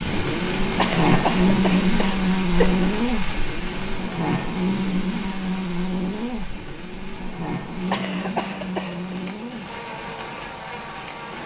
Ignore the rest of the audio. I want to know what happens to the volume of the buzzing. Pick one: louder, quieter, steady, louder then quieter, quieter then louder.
quieter.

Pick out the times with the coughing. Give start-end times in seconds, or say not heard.
0.8-2.8, 7.9-9.2.